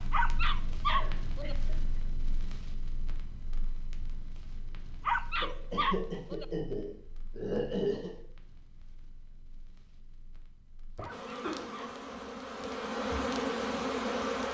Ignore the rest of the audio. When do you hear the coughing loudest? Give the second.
8 s.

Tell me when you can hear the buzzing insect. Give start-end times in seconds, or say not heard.
11.1-14.4.